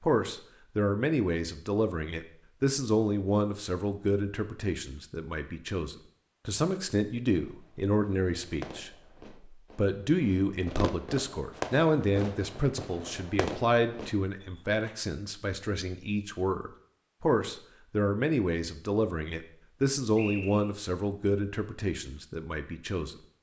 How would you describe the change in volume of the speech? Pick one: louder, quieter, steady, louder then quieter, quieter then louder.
steady.